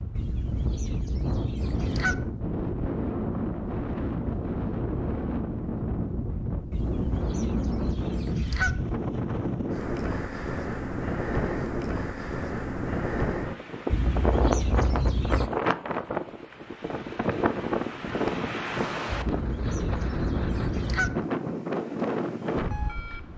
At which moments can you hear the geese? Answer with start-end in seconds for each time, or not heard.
0.1-2.1, 6.7-8.8, 13.8-15.5, 19.1-21.1.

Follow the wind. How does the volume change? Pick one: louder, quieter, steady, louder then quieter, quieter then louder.
steady.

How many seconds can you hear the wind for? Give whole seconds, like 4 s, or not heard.
23 s.